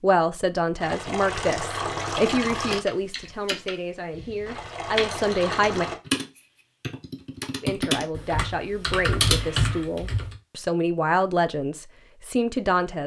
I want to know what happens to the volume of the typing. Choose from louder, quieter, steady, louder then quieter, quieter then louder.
louder.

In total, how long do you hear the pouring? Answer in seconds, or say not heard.
4 s.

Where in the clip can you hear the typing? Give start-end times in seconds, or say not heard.
2.0-10.3.